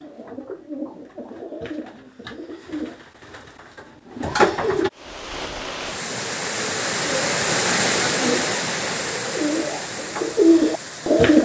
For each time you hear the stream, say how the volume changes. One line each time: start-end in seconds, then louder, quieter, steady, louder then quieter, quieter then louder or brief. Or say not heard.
4.9-11.3 louder then quieter.